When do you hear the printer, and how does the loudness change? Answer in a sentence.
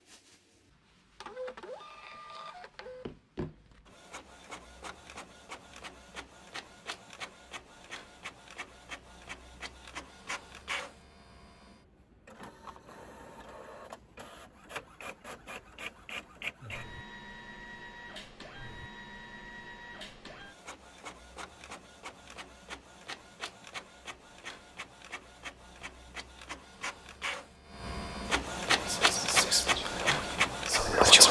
You can hear the printer from 0.0 to 30.9 s, getting louder.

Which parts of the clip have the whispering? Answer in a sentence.
You can hear the whispering from 28.7 to 31.2 s.